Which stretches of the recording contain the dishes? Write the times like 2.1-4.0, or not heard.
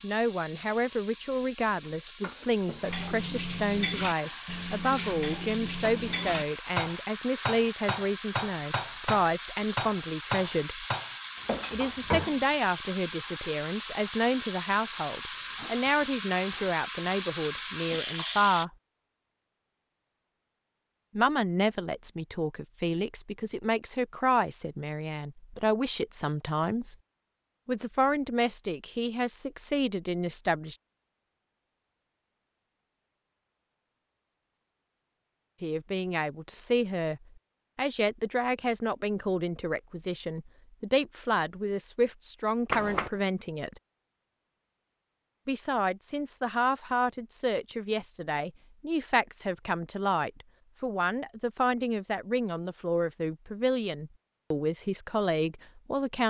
2.8-12.4.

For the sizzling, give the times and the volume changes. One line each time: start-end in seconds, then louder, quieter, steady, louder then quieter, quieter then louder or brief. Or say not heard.
0.0-18.6 louder.